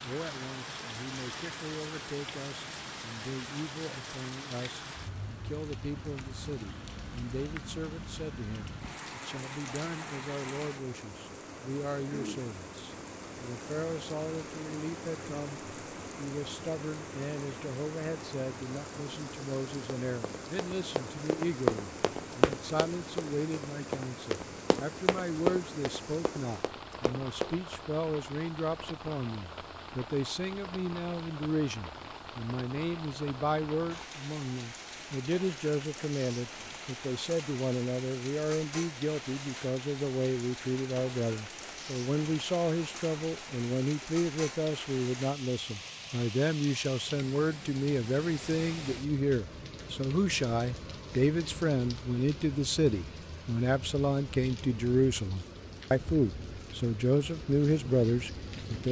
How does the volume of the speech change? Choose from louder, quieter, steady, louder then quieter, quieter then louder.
louder.